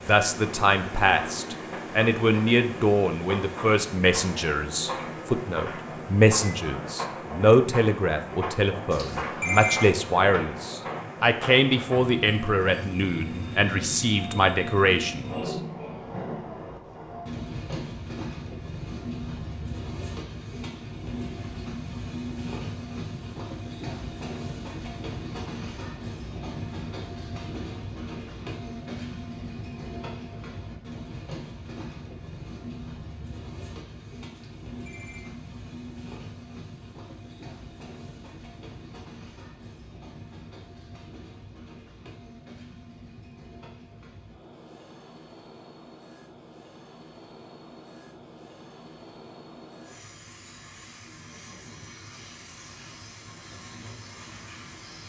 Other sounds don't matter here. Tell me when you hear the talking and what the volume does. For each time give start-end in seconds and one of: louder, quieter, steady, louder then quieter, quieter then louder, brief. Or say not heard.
0.1-15.6 steady.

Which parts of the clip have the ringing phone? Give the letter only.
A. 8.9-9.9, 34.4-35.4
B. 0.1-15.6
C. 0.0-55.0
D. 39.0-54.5
A.